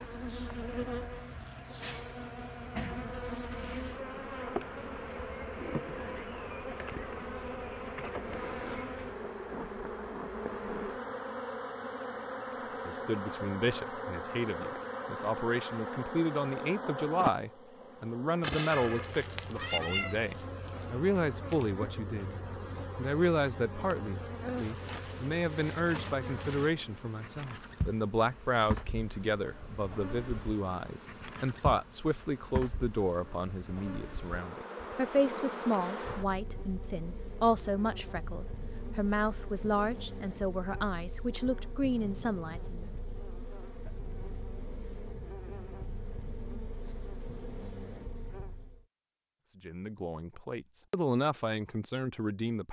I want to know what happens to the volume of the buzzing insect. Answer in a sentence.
The volume of the buzzing insect goes down.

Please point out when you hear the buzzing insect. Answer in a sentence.
You can hear the buzzing insect from 0.0 to 48.9 s.